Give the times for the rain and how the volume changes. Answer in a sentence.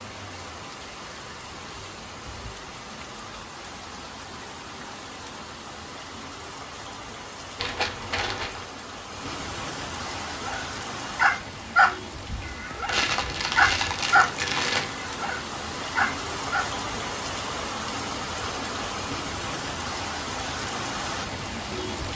The rain can be heard from 0.0 to 22.1 s, getting louder.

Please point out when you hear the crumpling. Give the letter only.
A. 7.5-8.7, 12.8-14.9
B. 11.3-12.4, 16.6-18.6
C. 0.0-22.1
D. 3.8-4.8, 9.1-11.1
A.